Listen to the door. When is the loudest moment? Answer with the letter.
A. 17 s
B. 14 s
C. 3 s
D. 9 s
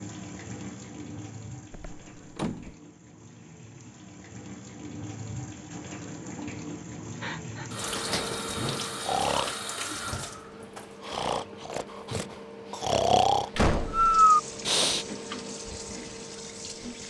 B.